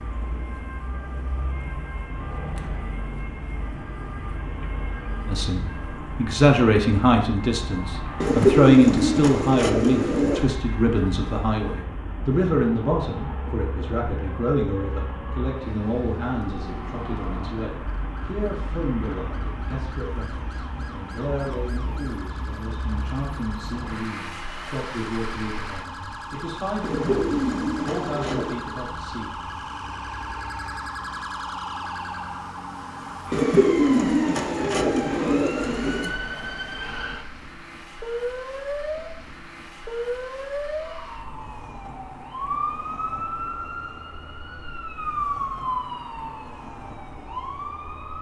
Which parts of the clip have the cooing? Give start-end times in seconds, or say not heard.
8.2-10.5, 26.8-28.6, 33.3-36.1.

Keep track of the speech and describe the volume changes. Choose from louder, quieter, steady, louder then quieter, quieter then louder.
quieter.